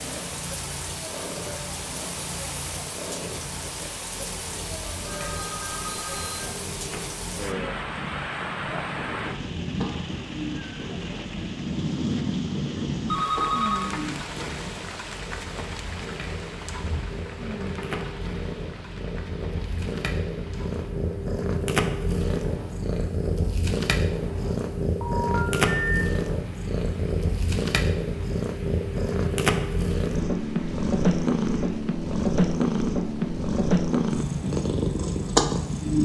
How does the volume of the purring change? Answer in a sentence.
The volume of the purring goes up.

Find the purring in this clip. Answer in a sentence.
The purring can be heard from 0.0 to 36.0 s.